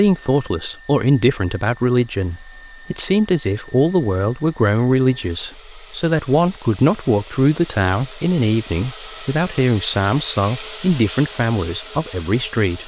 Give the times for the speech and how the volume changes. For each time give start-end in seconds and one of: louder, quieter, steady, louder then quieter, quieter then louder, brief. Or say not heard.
0.0-12.8 steady.